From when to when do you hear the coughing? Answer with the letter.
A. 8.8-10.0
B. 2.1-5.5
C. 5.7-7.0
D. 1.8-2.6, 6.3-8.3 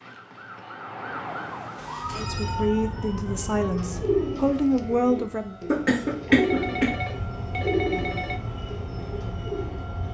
C.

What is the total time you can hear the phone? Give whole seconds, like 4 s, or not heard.
3 s.